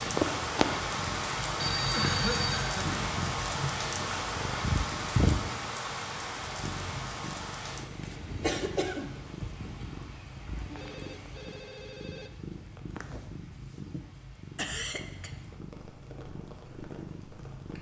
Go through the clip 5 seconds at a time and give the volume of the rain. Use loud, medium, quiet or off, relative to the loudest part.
loud, medium, quiet, quiet.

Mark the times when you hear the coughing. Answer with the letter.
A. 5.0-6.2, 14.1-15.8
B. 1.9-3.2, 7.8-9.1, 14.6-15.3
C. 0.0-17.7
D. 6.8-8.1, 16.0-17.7
B.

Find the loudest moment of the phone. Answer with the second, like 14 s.
2 s.